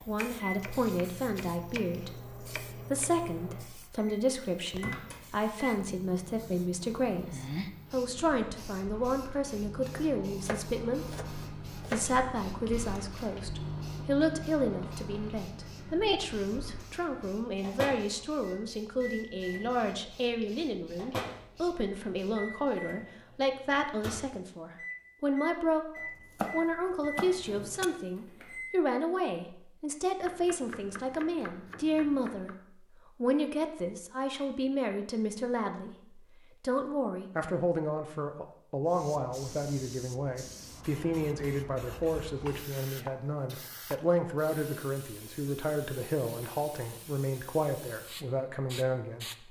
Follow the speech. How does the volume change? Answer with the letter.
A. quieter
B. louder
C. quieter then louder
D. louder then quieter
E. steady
E.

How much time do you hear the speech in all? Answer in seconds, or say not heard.
49 s.